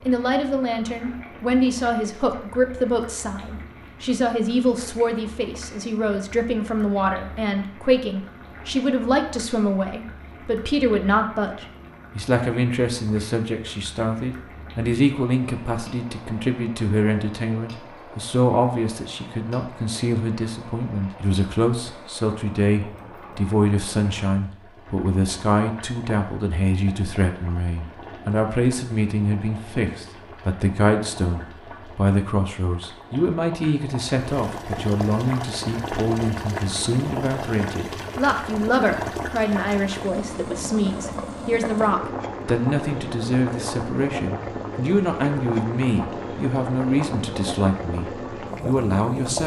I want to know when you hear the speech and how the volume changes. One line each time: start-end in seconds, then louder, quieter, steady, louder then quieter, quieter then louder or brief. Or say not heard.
0.1-49.4 steady.